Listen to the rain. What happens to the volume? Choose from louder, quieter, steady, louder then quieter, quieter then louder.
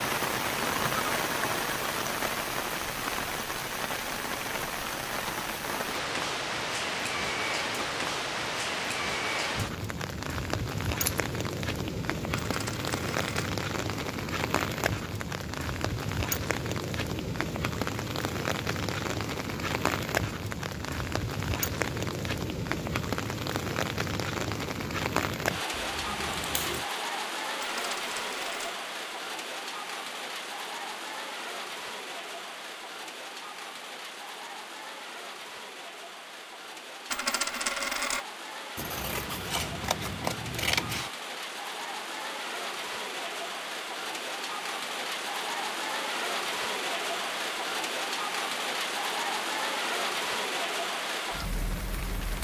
quieter then louder.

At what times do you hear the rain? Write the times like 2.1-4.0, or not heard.
0.0-52.3.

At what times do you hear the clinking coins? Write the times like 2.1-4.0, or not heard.
12.3-13.5, 27.6-28.8, 37.1-38.2.